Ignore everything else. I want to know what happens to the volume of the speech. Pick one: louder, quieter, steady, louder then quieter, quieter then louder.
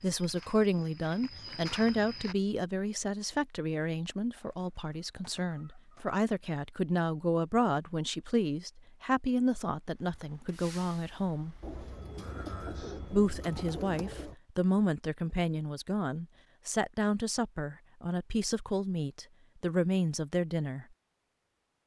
steady.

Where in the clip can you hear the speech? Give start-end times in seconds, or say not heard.
0.0-11.6, 13.1-20.9.